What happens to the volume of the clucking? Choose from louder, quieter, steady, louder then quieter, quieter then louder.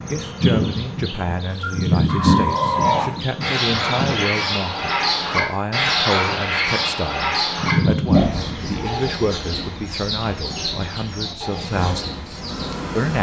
quieter.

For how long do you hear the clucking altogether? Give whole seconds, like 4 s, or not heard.
11 s.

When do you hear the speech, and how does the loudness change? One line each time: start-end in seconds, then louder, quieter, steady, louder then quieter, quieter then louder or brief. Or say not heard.
0.1-13.1 steady.